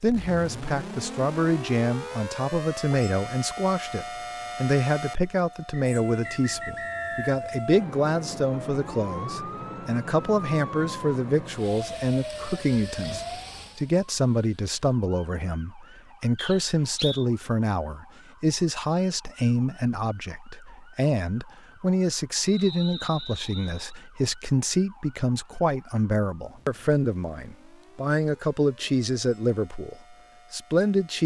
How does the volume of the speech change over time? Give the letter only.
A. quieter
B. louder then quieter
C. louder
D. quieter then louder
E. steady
E.